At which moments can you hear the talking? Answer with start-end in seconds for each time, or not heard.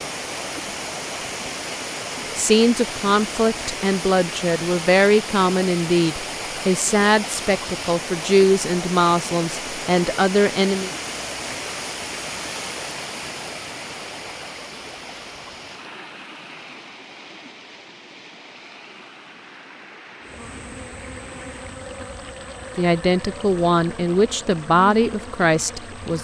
2.4-10.9, 22.8-26.2.